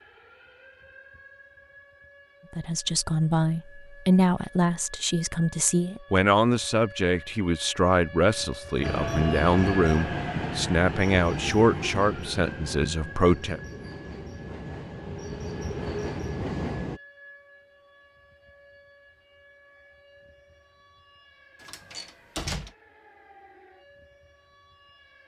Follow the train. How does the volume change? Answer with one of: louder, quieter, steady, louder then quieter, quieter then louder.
quieter then louder.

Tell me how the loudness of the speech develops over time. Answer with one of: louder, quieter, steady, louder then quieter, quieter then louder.
steady.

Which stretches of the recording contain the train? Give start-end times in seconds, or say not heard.
8.8-17.0.